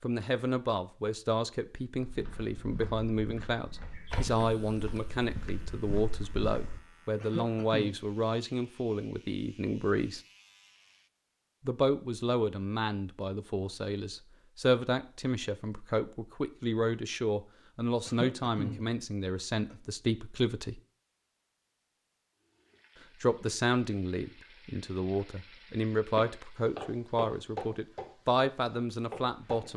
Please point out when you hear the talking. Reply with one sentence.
The talking can be heard from 0.0 to 10.2 s, from 11.7 to 20.8 s and from 23.2 to 29.7 s.